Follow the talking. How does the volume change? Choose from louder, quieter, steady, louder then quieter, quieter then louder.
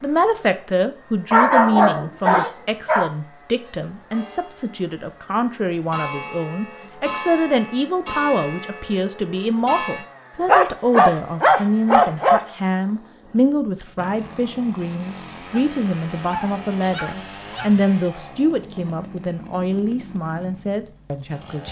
steady.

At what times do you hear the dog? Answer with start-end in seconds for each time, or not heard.
1.3-3.1, 10.4-12.4, 15.5-17.7.